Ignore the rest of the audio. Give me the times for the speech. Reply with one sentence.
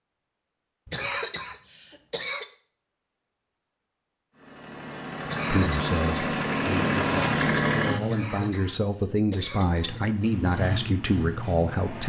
The speech can be heard from 5.5 to 12.0 s.